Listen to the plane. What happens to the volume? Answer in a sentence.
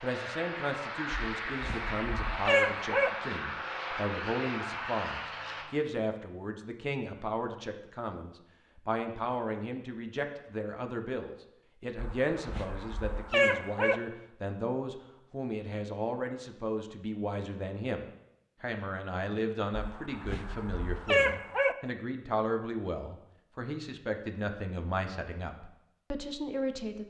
The loudness of the plane stays about the same.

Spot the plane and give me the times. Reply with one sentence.
You can hear the plane from 0.0 to 5.7 s.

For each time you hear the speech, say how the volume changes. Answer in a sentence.
The speech can be heard from 0.0 to 27.0 s, at a steady volume.